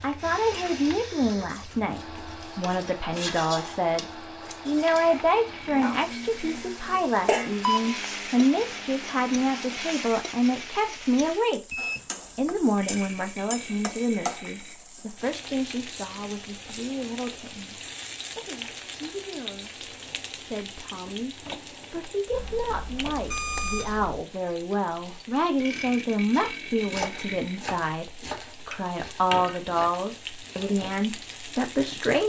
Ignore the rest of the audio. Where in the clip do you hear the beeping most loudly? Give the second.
8 s.